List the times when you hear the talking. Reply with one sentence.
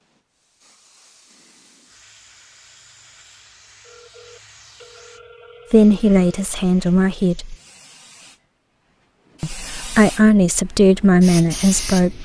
The talking can be heard from 5.7 to 7.5 s and from 9.4 to 12.2 s.